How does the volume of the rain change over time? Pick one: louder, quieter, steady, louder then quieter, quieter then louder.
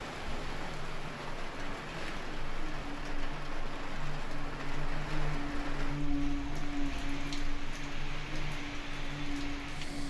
steady.